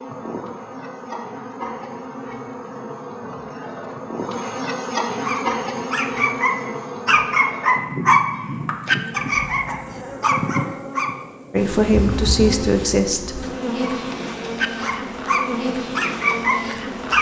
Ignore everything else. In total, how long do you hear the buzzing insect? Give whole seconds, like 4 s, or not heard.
17 s.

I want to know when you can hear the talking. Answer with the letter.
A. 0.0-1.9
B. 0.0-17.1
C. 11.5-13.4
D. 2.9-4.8
C.